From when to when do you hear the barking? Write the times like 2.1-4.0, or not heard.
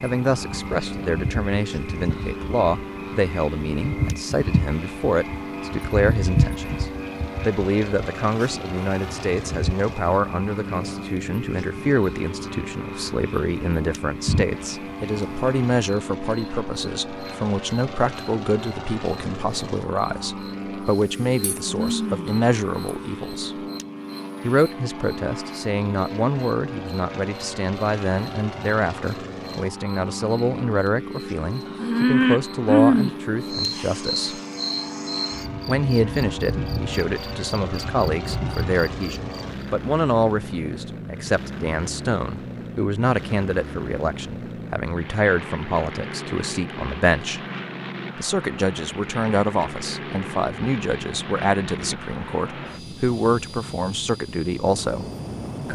not heard.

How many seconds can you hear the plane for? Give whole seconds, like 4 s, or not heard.
56 s.